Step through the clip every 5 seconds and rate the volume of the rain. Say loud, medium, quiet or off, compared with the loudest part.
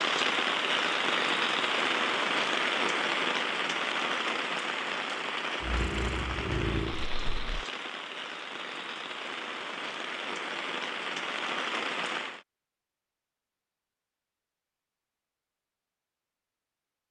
loud, medium, medium, off.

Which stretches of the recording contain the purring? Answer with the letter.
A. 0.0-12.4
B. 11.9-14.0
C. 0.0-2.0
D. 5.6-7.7
D.